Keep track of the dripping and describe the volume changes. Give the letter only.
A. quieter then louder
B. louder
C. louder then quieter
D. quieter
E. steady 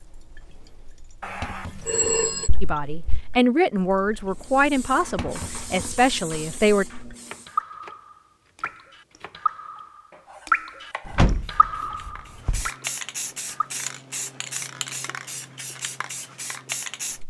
A.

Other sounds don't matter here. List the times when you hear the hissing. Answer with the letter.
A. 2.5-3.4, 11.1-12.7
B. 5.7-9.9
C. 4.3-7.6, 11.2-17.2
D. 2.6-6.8
C.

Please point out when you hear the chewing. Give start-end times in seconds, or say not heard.
not heard.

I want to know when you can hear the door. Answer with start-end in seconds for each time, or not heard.
2.5-3.4, 11.1-12.7.